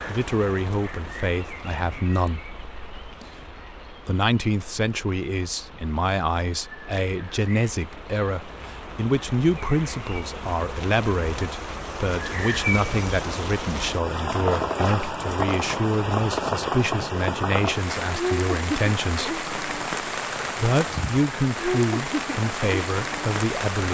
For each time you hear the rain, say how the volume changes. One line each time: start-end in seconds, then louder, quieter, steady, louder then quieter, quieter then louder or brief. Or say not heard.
0.0-23.8 louder.